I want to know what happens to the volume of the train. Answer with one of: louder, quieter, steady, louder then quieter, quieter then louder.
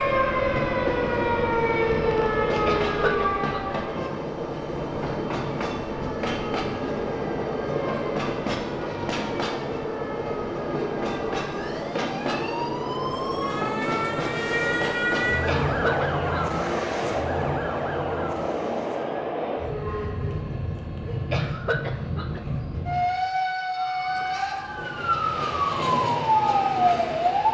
steady.